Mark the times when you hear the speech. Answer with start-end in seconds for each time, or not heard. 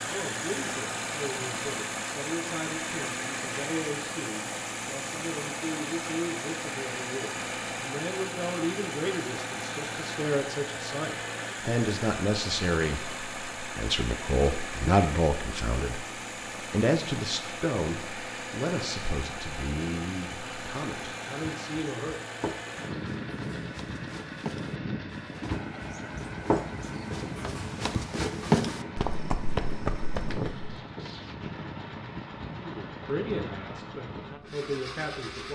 0.0-22.2, 32.5-35.5.